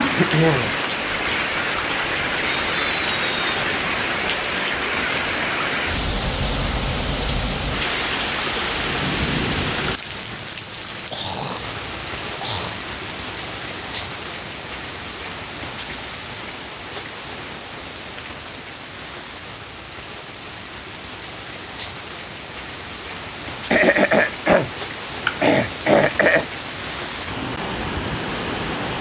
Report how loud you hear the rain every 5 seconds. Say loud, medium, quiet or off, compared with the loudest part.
loud, loud, medium, medium, medium, medium.